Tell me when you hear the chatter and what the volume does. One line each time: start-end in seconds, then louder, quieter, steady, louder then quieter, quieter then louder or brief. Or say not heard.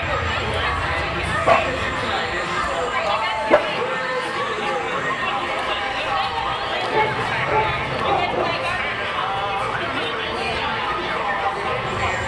0.0-12.2 steady.